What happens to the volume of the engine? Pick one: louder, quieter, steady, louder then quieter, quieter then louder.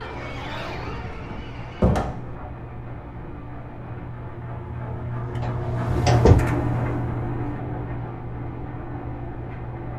louder then quieter.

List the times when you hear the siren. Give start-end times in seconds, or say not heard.
0.0-2.0.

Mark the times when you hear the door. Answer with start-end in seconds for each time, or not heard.
0.9-2.2, 5.4-6.5.